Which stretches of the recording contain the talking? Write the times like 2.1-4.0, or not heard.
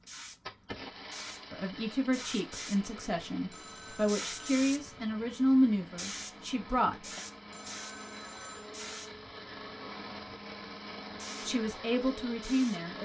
1.5-7.2, 11.4-13.0.